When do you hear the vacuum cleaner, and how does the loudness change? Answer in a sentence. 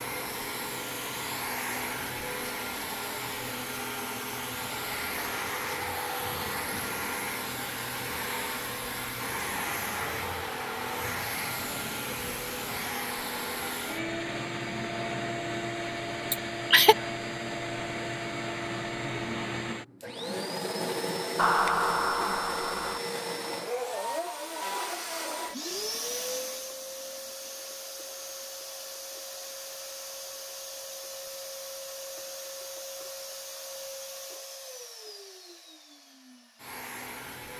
The vacuum cleaner can be heard from 0.0 to 37.5 s, getting quieter.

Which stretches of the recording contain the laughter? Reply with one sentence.
The laughter can be heard from 16.3 to 16.9 s and from 21.4 to 23.0 s.